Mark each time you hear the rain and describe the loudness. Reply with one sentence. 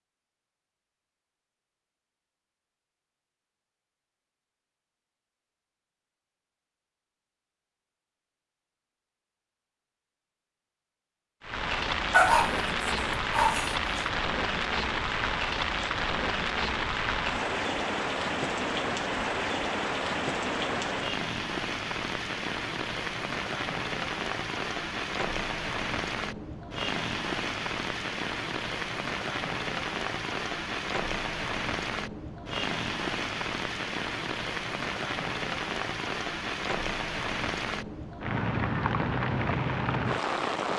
You can hear the rain from 11.4 to 40.7 s, at a steady volume.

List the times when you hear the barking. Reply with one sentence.
You can hear the barking from 12.1 to 13.9 s.